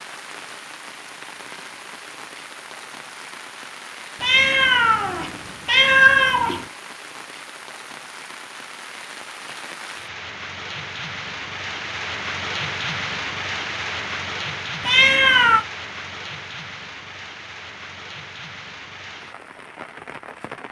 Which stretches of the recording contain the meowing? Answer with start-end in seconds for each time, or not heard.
4.2-6.7, 14.8-15.7.